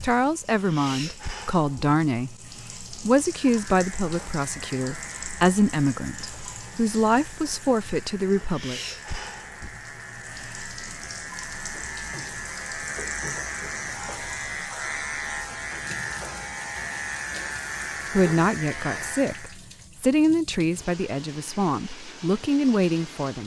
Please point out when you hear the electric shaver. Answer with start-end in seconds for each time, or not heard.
3.2-19.6.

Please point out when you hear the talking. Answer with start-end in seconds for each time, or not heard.
0.0-2.4, 3.0-8.8, 18.1-23.4.